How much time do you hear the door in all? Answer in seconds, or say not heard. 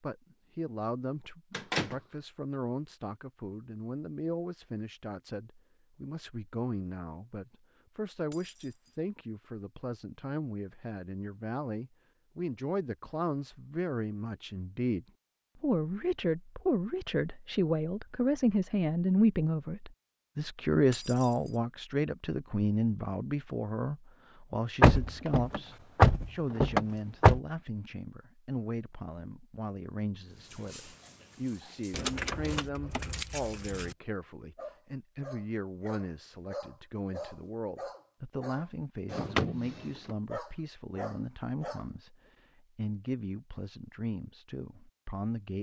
4 s.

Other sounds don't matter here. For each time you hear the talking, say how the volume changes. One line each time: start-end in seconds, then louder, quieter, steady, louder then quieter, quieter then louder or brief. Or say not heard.
0.0-45.5 louder then quieter.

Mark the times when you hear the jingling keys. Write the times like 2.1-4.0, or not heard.
8.3-9.0, 20.9-21.6, 31.9-34.0.